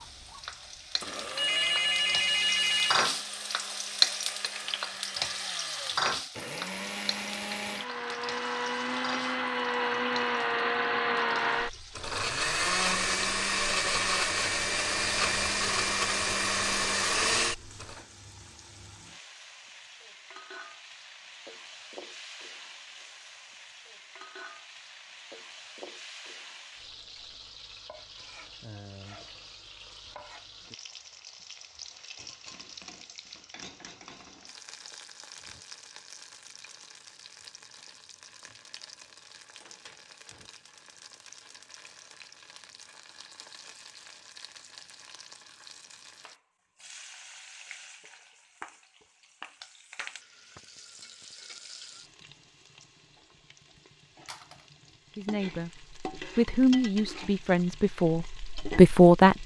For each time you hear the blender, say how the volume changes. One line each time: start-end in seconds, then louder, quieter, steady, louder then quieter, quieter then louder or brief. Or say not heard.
0.0-18.0 louder.